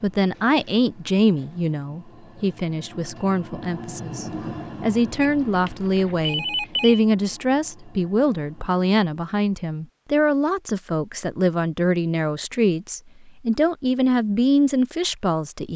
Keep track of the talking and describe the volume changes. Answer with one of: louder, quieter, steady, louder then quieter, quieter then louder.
steady.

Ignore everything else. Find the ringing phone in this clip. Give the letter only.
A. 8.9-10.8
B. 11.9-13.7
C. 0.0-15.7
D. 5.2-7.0
D.